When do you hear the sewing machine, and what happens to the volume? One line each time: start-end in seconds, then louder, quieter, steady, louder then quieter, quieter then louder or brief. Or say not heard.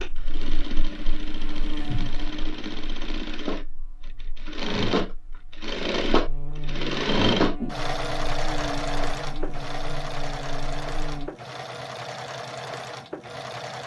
0.0-13.8 louder then quieter.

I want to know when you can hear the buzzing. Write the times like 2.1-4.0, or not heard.
0.0-11.3.